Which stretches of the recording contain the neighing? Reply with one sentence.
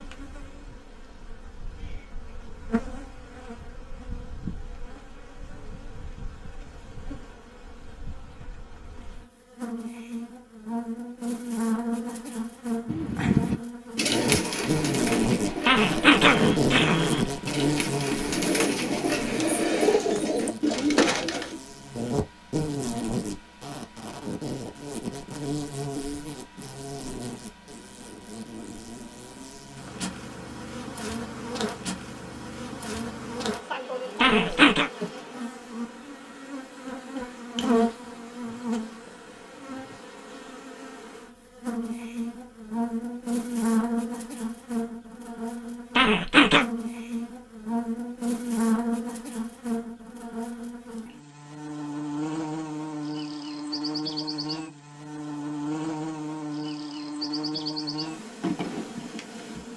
You can't hear the neighing here.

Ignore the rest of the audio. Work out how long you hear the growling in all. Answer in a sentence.
You can hear the growling for 3 seconds altogether.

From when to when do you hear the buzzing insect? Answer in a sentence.
You can hear the buzzing insect from 0.0 to 59.7 s.